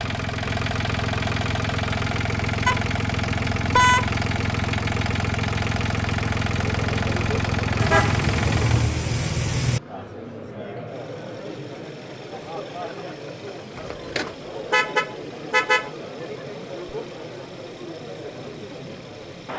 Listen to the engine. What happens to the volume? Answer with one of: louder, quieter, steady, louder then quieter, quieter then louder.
quieter.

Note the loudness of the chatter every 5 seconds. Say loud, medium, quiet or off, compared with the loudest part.
off, loud, loud, loud.